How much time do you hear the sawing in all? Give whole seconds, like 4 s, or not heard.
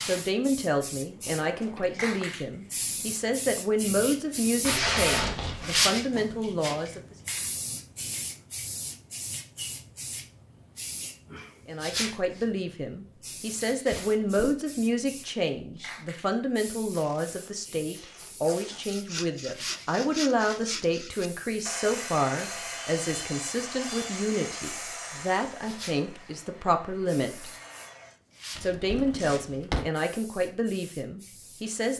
9 s.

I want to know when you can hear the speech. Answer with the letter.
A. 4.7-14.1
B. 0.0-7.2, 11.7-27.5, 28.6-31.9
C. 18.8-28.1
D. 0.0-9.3
B.